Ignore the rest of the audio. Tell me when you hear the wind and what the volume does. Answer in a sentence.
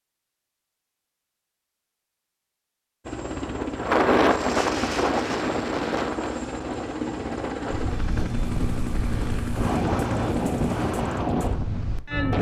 You can hear the wind from 3.3 to 12.3 s, getting quieter then louder.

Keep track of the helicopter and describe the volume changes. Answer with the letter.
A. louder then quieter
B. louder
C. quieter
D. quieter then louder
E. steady
E.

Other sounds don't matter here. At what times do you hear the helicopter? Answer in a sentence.
You can hear the helicopter from 3.0 to 10.9 s.